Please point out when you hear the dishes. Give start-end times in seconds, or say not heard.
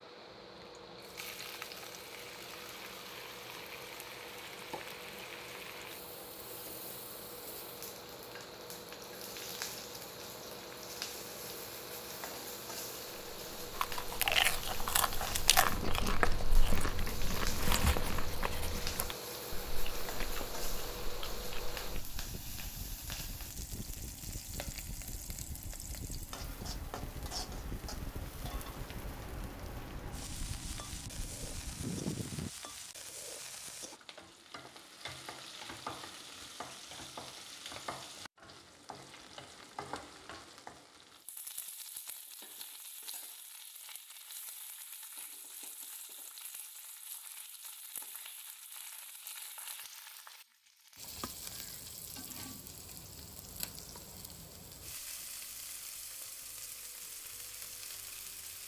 not heard.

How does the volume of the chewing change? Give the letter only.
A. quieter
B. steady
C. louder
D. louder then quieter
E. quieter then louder
A.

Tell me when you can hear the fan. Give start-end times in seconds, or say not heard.
0.0-32.5.